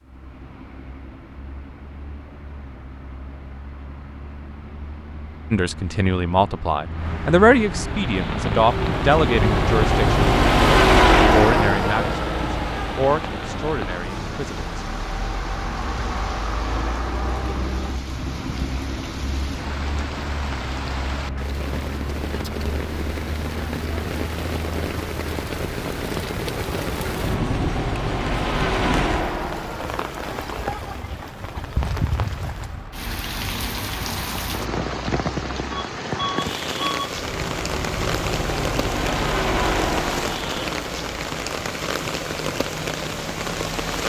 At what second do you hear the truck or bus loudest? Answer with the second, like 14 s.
11 s.